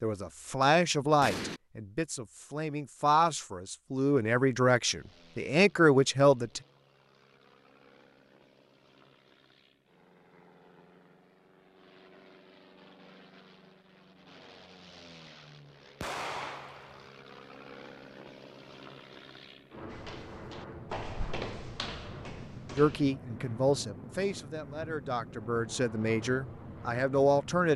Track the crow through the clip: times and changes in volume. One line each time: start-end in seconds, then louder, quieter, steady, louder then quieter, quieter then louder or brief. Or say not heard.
not heard.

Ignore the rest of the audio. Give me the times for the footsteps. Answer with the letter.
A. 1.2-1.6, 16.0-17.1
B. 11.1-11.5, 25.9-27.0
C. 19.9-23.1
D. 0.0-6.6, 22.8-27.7
C.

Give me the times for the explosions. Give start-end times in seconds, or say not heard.
1.2-1.6, 16.0-17.1.